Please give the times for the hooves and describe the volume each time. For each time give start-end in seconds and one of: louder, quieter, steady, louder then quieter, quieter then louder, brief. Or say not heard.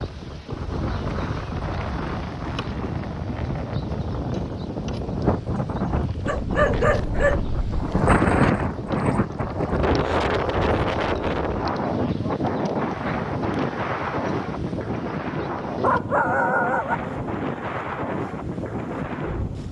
not heard.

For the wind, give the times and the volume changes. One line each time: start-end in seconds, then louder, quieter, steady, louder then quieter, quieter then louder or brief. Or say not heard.
0.0-19.6 louder then quieter.